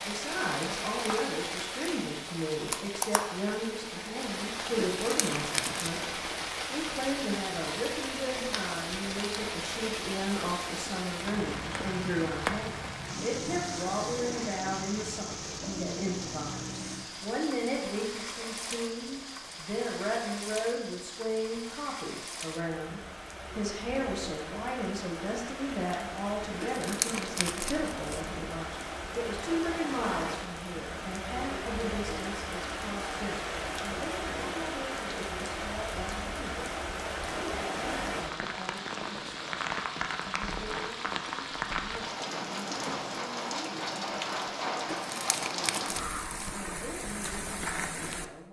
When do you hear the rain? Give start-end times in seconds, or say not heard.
0.0-48.2.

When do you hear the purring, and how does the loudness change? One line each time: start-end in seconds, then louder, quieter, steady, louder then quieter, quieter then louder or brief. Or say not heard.
not heard.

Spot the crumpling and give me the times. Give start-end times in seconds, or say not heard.
4.8-5.9, 26.6-28.2, 44.9-46.5.